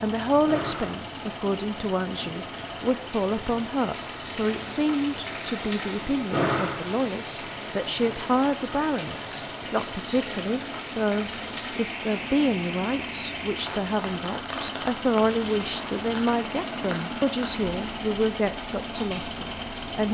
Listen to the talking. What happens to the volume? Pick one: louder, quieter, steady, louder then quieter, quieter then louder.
steady.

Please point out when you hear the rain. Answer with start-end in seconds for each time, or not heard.
0.0-20.0.